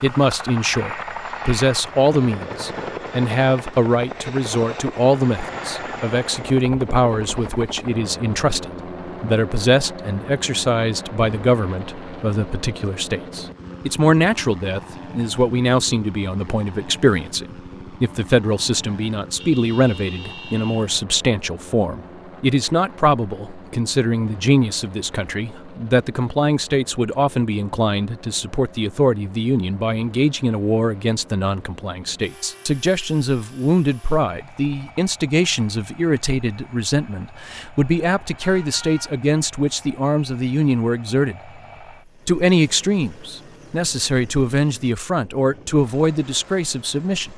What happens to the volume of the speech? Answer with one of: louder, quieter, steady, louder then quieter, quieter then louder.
steady.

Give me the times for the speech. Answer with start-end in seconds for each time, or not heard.
0.0-41.5, 42.2-47.3.